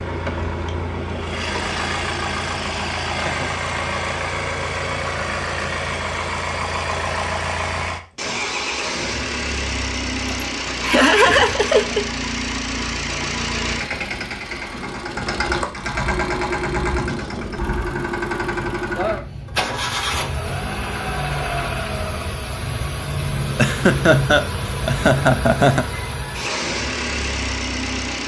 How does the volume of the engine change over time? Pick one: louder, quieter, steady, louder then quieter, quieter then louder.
steady.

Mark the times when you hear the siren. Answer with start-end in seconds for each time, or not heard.
not heard.